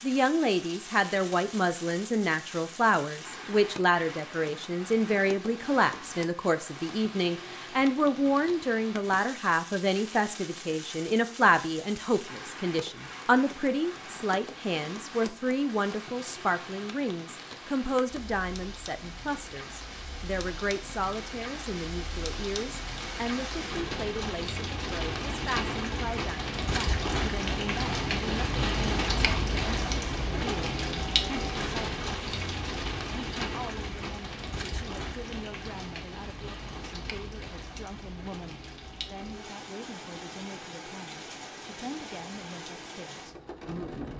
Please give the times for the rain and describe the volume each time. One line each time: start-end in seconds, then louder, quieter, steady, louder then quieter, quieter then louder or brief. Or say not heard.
0.0-44.1 louder then quieter.